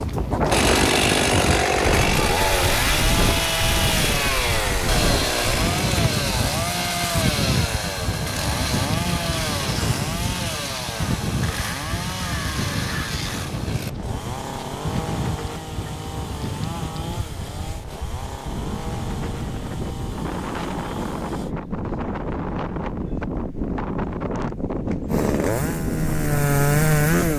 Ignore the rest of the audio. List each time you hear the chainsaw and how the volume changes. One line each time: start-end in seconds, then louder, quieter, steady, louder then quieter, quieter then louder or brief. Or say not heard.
0.0-21.6 quieter
25.1-27.3 brief.